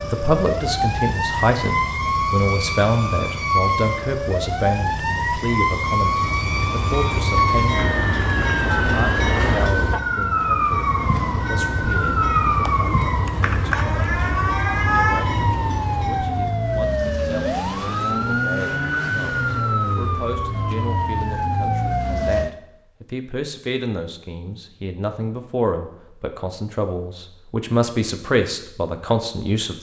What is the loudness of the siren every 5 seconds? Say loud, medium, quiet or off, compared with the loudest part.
loud, loud, loud, loud, loud, off.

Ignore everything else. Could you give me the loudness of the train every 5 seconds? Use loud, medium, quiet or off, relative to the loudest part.
off, loud, loud, loud, off, off.